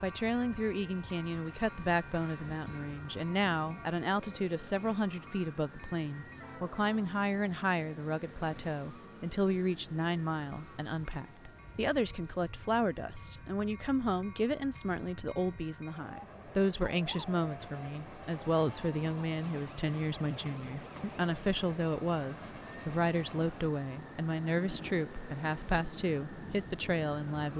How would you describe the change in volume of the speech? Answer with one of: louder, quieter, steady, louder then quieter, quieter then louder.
steady.